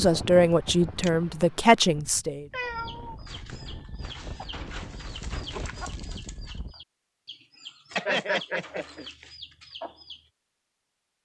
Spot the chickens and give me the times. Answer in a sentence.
You can hear the chickens from 2.6 to 10.3 s.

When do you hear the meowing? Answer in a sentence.
You can hear the meowing from 2.5 to 3.2 s.